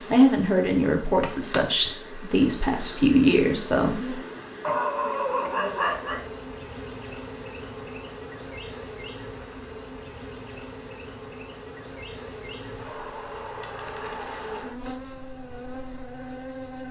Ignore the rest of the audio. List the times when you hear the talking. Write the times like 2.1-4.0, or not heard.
0.1-4.2.